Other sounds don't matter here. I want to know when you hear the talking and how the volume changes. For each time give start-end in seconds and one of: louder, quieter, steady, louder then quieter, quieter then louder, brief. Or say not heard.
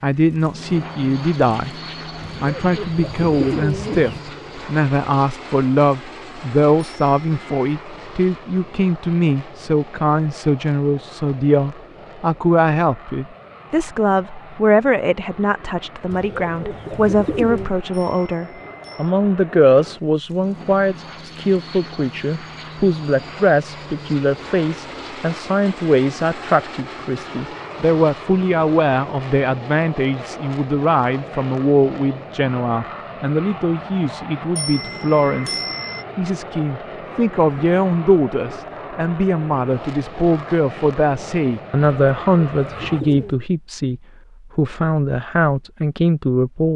0.0-1.7 brief
2.4-46.7 steady.